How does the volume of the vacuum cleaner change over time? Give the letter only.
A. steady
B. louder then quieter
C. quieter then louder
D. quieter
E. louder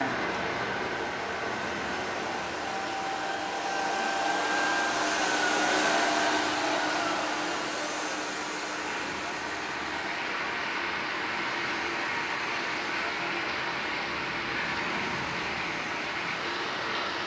B.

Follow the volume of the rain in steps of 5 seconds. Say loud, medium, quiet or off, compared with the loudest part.
loud, medium, loud, loud.